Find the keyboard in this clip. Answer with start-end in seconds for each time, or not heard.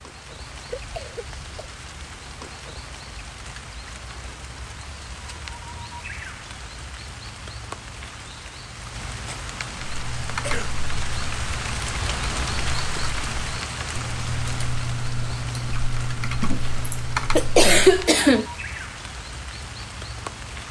9.8-18.1.